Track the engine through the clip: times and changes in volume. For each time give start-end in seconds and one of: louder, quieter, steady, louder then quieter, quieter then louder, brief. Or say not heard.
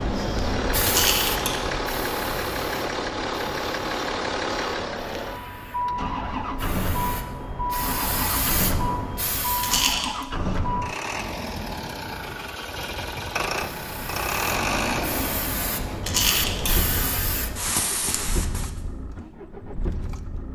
0.0-20.5 quieter.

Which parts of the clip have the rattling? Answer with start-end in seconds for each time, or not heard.
0.8-1.6, 9.6-10.2, 16.0-16.8.